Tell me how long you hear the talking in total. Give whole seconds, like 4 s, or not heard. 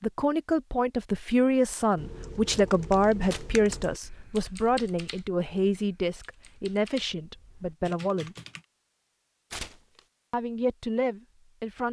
10 s.